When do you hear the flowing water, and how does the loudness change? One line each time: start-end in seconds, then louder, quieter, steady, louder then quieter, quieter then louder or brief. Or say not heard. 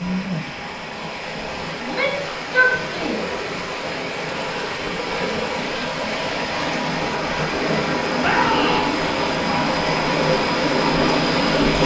0.0-11.8 louder.